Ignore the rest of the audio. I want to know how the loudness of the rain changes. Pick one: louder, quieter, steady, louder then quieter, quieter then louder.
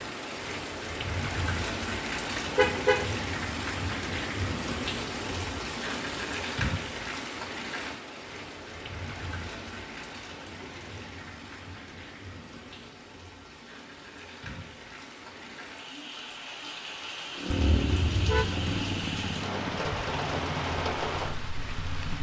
quieter then louder.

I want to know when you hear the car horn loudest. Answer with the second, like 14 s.
3 s.